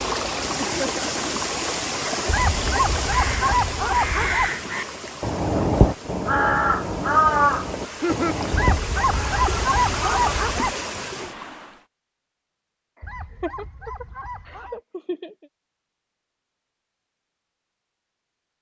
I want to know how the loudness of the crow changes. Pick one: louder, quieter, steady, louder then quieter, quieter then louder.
louder then quieter.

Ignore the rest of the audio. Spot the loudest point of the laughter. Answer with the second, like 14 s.
8 s.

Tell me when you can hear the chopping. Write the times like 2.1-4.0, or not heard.
not heard.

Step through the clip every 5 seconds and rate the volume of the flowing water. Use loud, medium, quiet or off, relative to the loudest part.
loud, medium, loud, off.